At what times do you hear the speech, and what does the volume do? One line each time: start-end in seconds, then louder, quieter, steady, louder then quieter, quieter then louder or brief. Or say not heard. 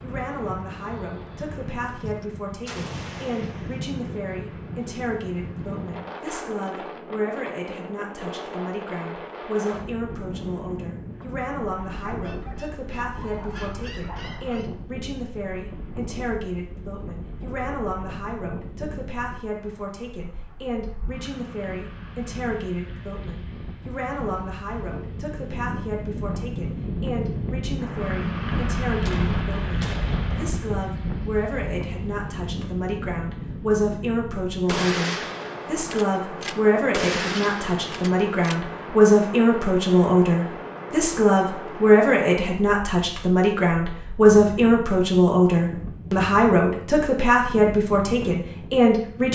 0.0-49.3 louder.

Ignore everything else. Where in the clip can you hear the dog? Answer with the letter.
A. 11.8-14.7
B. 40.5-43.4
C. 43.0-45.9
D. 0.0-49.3
A.